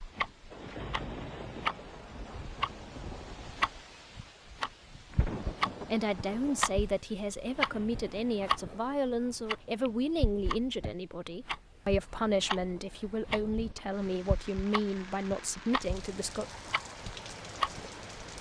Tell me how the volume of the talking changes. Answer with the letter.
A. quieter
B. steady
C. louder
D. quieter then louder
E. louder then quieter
B.